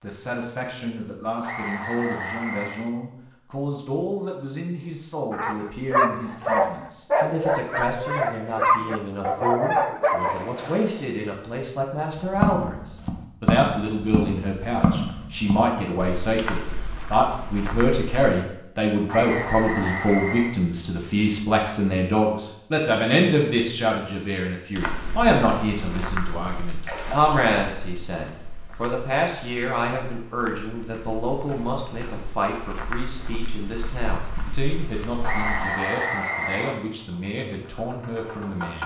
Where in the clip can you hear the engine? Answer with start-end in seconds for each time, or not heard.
37.0-38.8.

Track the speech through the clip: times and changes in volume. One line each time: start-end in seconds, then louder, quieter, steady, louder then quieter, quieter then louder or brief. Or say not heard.
0.0-38.8 louder then quieter.